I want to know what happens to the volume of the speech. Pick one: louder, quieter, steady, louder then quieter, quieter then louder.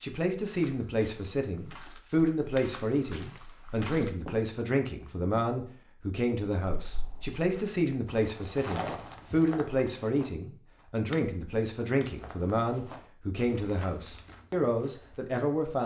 steady.